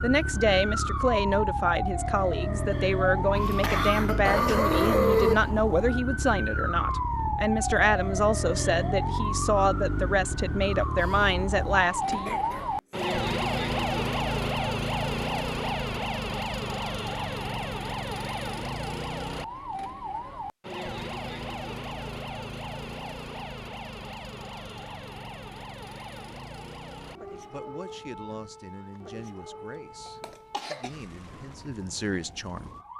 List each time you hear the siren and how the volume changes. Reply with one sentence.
You can hear the siren from 0.0 to 32.9 s, getting quieter.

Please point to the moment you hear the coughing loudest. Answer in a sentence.
The loudest moment of the coughing is at 5 seconds.